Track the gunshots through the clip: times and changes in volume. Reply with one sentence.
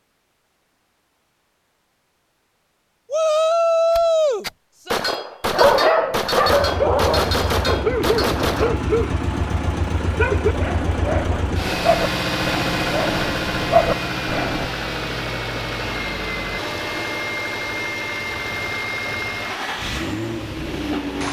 The gunshots can be heard from 3.9 to 8.8 s, at a steady volume.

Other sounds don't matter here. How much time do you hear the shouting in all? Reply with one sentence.
You can hear the shouting for 2 seconds altogether.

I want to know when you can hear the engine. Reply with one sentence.
You can hear the engine from 6.5 to 21.2 s.